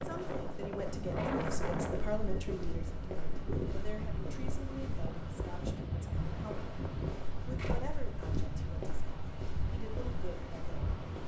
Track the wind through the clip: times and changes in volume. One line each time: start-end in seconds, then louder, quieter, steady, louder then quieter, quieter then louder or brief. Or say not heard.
0.0-11.2 quieter.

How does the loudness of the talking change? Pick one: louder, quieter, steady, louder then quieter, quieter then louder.
quieter.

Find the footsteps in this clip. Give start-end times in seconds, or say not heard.
0.0-11.2.